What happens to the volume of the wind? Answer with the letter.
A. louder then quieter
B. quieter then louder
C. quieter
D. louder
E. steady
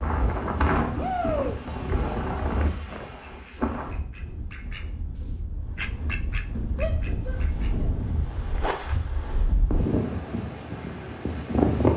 B.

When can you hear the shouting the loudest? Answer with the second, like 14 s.
1 s.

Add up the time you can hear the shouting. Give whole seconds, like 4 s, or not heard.
2 s.